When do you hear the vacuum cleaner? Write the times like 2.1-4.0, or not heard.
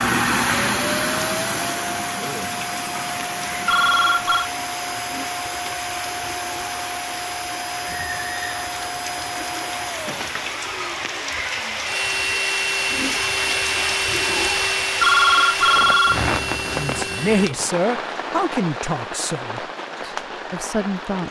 0.0-17.5.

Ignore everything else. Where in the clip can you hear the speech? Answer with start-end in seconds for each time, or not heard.
16.7-21.2.